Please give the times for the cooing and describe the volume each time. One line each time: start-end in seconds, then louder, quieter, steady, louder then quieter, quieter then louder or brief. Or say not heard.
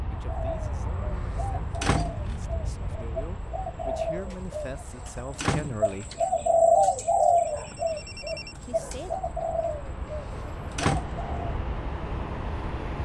0.1-11.6 louder then quieter.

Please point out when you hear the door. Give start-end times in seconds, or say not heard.
1.1-2.4, 4.7-6.2, 10.1-11.1.